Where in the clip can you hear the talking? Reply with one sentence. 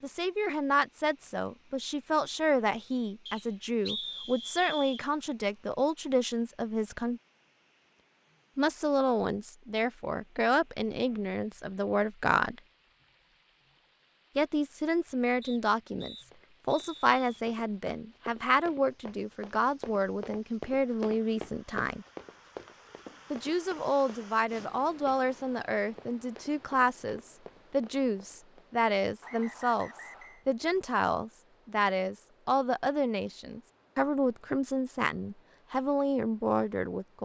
The talking can be heard from 0.0 to 7.2 s, from 8.6 to 12.6 s, from 14.3 to 22.1 s and from 23.3 to 37.2 s.